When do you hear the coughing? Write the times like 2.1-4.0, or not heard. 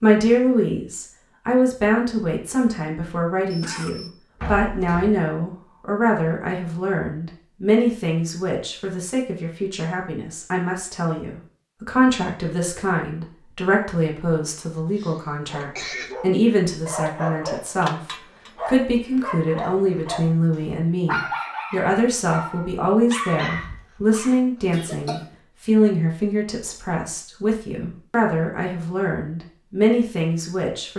3.5-4.1, 14.8-16.1, 24.7-25.4.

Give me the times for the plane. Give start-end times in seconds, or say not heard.
not heard.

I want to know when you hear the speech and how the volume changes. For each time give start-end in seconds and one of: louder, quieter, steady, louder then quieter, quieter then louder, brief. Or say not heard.
0.0-30.9 steady.